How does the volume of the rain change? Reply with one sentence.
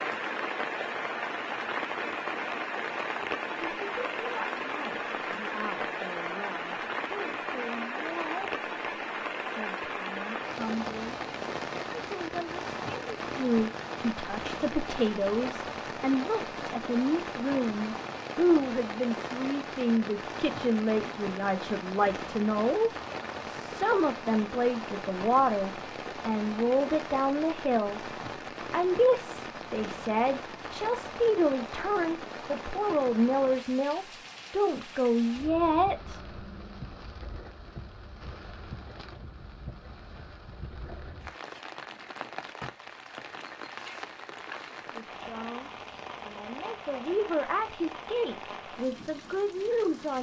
The loudness of the rain goes down.